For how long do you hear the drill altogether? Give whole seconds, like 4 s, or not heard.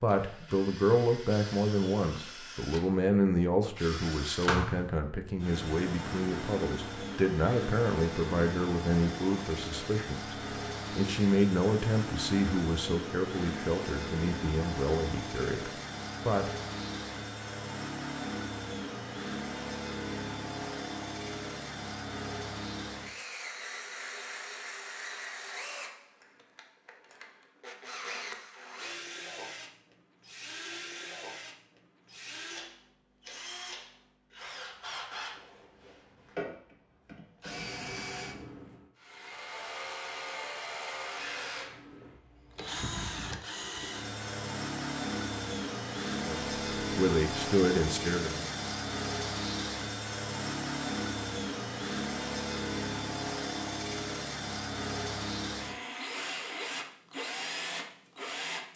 59 s.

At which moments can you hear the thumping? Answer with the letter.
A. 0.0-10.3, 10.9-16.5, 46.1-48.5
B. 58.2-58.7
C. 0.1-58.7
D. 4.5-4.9
D.